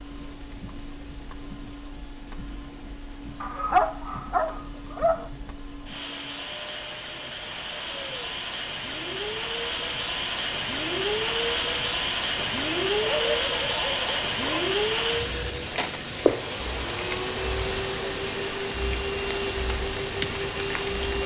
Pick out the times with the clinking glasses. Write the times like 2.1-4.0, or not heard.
not heard.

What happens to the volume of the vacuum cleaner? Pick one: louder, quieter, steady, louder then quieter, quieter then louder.
louder.